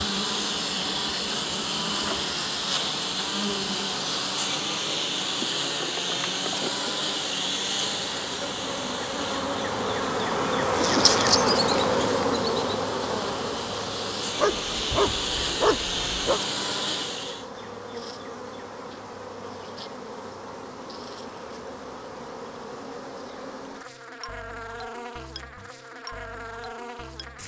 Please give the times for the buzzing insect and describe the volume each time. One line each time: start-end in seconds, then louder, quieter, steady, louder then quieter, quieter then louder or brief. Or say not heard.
0.0-27.4 louder then quieter.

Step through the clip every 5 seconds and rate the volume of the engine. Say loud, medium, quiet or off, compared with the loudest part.
loud, loud, medium, loud, off, off.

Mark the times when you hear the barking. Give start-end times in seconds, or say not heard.
14.3-16.4.